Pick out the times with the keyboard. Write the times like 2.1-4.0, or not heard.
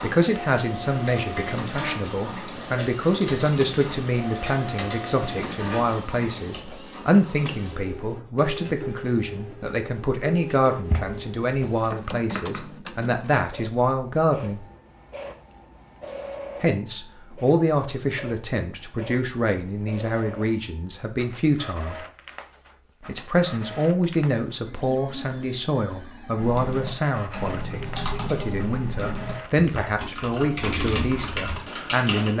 0.8-6.8, 26.4-32.3.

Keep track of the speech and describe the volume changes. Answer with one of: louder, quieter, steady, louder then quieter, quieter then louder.
steady.